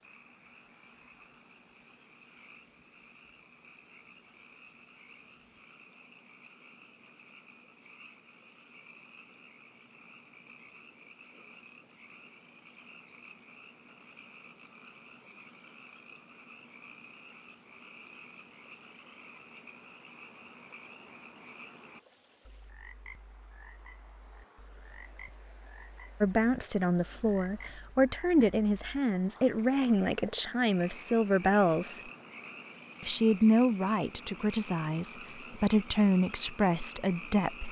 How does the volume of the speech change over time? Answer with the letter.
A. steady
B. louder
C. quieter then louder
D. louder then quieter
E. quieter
A.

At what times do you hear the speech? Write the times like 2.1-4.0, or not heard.
26.2-32.0, 33.0-37.6.